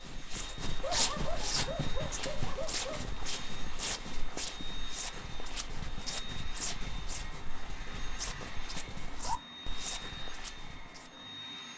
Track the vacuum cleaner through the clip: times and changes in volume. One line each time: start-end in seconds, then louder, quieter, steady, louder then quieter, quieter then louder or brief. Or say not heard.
0.0-11.7 steady.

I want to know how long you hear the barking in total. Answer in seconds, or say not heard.
2 s.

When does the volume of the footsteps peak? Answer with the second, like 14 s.
1 s.